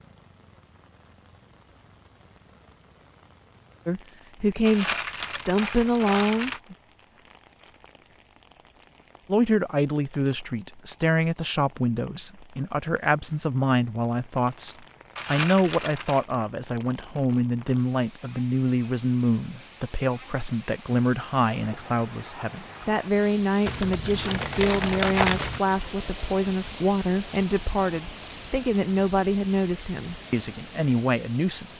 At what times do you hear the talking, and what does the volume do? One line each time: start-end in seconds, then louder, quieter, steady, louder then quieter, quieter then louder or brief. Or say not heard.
3.9-6.8 brief
9.2-31.7 steady.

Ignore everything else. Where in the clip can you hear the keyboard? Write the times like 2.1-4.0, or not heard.
not heard.